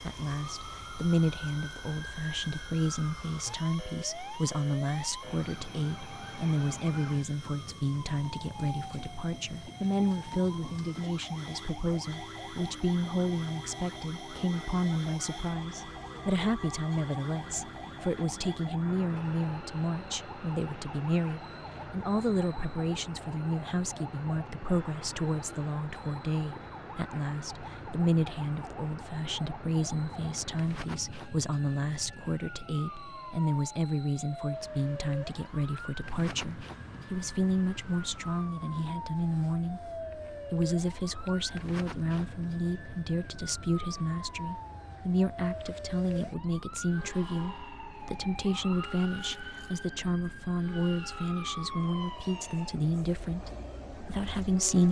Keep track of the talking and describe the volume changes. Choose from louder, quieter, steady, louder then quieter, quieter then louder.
steady.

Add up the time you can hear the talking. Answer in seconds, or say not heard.
55 s.